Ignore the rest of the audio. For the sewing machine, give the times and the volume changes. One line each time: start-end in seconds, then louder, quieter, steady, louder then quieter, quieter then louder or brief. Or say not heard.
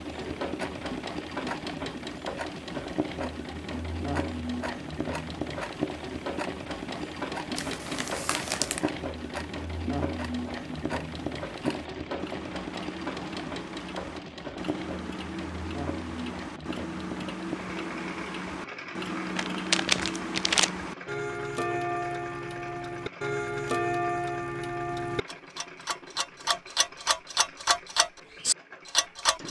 0.0-29.4 quieter.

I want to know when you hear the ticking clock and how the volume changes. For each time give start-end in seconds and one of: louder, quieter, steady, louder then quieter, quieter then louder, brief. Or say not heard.
0.0-29.4 louder.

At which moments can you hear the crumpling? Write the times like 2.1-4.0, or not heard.
7.5-8.8, 19.4-20.7.